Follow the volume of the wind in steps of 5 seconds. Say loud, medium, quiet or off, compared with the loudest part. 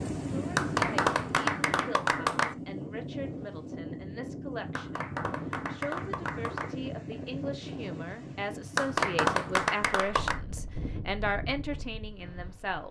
loud, loud, medium.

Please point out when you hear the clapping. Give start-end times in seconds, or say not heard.
0.6-2.5, 4.8-6.8, 8.8-10.4.